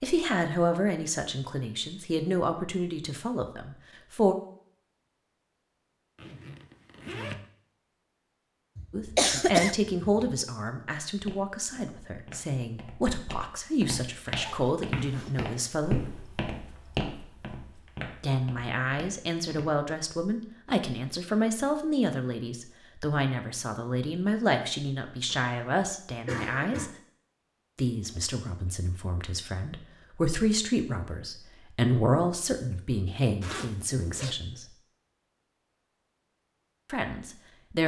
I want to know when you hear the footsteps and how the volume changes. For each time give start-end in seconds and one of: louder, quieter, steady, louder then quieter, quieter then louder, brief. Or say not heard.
11.1-19.9 louder then quieter.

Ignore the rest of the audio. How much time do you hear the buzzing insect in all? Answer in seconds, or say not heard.
not heard.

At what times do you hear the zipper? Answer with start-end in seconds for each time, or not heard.
6.2-7.5, 14.3-15.6, 33.4-34.4.